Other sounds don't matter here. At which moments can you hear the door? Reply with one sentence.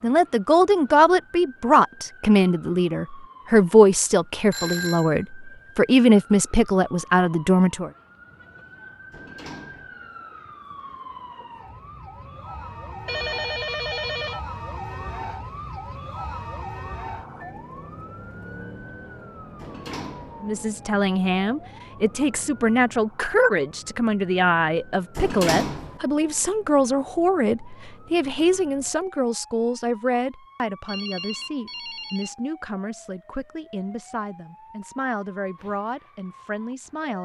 You can hear the door from 9.1 to 9.9 s, from 19.6 to 20.4 s and from 25.1 to 26.0 s.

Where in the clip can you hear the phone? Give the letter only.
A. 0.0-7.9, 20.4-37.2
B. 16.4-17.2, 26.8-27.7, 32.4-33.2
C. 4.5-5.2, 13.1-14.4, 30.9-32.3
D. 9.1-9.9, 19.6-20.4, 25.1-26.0
C.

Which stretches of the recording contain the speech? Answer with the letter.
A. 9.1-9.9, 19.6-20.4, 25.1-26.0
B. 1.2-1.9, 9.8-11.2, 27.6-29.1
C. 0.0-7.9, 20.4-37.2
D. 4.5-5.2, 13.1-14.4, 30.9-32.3
C.